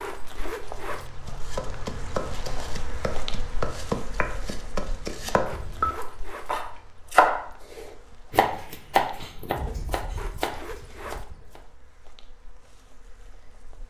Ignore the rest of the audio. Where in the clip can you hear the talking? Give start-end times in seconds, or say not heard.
not heard.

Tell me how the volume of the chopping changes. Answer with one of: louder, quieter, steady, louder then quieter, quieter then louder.
louder then quieter.